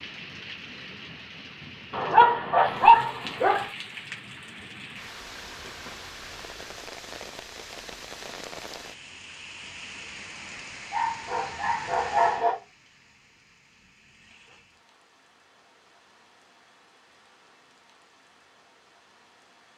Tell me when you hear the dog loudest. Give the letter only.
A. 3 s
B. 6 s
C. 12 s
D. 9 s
A.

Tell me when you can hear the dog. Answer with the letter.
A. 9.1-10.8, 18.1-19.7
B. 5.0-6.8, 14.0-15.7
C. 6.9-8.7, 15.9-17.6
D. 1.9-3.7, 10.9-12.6
D.